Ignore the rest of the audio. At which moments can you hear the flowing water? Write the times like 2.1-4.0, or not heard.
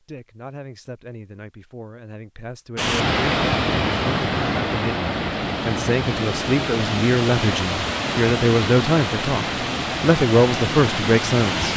2.8-11.7.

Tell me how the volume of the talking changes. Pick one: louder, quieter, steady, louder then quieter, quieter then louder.
louder.